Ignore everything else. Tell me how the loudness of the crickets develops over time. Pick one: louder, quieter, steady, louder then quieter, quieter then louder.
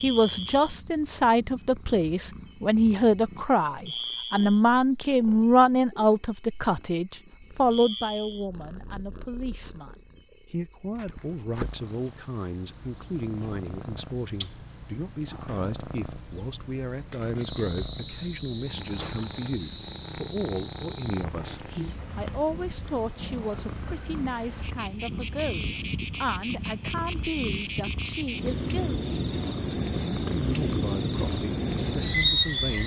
quieter then louder.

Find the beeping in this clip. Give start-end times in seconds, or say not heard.
not heard.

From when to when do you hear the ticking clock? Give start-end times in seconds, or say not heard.
not heard.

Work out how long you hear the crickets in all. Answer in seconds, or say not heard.
33 s.